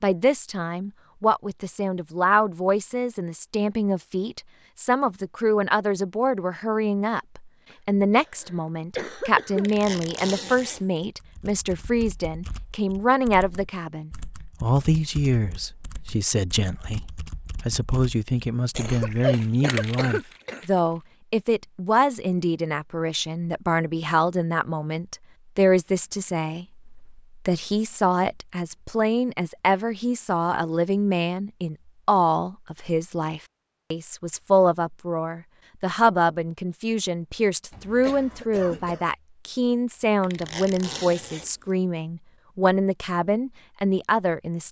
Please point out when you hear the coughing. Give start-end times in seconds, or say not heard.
7.7-9.7, 18.8-20.6, 37.7-39.0.